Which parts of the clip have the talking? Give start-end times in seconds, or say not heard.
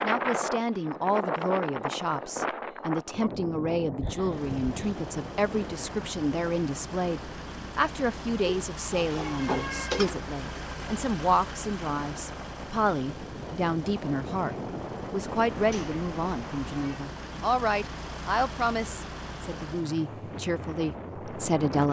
0.0-21.8.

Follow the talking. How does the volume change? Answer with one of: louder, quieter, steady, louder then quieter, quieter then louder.
steady.